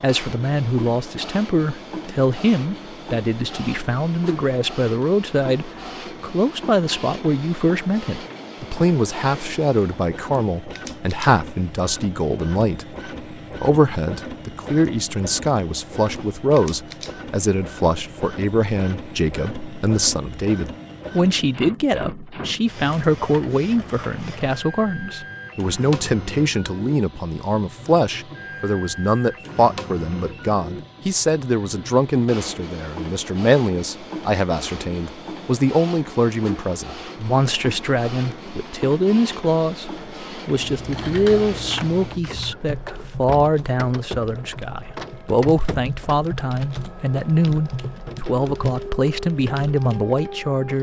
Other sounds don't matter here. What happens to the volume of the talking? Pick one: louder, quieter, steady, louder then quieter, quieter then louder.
steady.